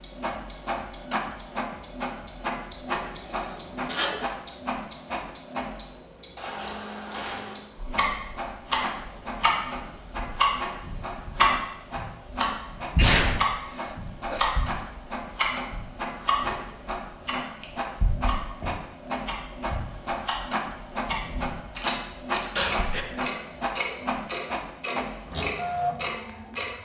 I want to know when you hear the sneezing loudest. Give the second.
13 s.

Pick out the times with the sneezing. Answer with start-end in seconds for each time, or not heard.
3.0-4.2, 12.9-14.4, 22.6-23.1.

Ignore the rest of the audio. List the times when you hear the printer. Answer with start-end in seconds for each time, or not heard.
0.0-26.8.